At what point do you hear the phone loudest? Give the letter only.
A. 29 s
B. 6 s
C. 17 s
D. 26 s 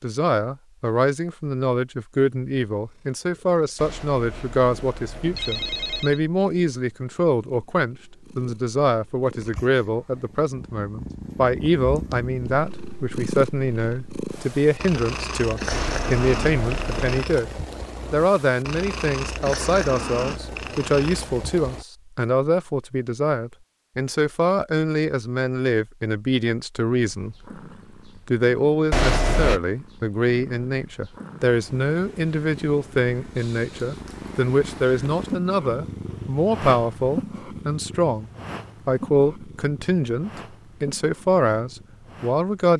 A.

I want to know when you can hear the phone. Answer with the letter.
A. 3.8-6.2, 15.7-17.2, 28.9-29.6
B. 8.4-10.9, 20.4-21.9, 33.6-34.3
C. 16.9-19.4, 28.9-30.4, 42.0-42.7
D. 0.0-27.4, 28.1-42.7
A.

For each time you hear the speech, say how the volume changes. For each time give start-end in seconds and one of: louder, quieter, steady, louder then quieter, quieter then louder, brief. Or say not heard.
0.0-27.4 steady
28.1-42.7 steady.